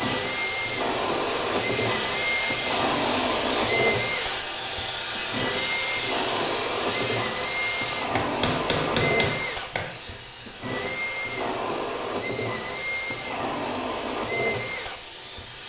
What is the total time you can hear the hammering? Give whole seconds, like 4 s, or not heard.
2 s.